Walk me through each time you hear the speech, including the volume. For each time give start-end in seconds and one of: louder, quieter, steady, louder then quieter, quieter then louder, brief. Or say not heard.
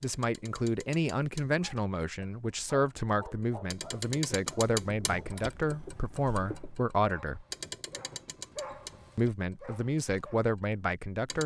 0.0-7.5 steady
9.2-11.4 brief.